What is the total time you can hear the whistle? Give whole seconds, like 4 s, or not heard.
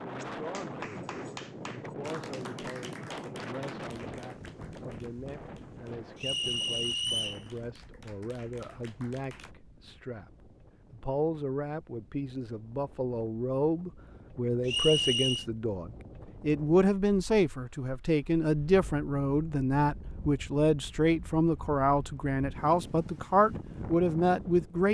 2 s.